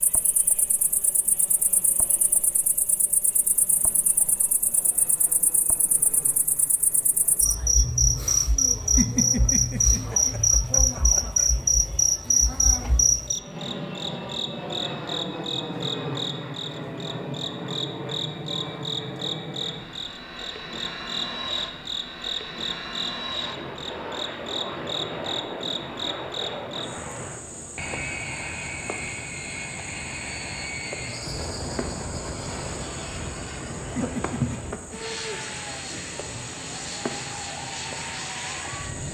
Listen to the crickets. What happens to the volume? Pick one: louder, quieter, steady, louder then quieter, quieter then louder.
louder then quieter.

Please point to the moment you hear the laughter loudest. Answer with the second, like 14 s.
9 s.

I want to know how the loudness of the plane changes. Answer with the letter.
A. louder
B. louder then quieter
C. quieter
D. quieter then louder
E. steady
A.